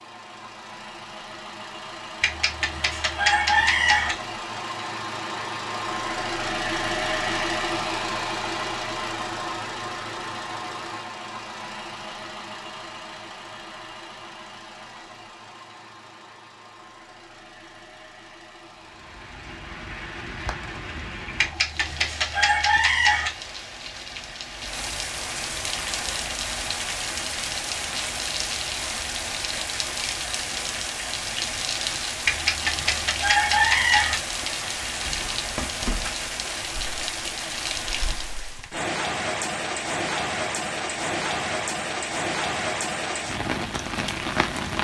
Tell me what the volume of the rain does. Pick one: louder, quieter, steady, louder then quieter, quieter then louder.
louder.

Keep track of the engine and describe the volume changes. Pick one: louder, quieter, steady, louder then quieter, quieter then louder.
louder then quieter.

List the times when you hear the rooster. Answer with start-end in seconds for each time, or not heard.
2.2-4.2, 21.4-23.3, 32.2-34.1.